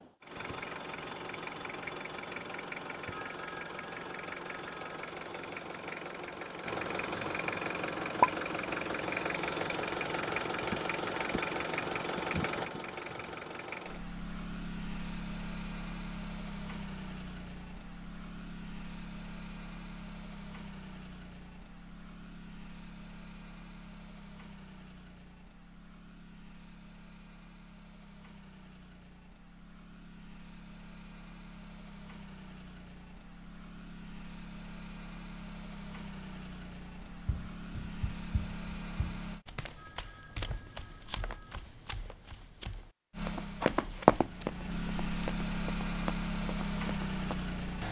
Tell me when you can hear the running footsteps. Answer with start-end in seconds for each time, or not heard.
37.2-47.4.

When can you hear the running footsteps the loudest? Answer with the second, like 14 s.
44 s.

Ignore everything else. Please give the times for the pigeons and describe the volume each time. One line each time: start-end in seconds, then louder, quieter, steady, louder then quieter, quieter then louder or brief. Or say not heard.
not heard.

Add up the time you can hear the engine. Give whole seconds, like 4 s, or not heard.
44 s.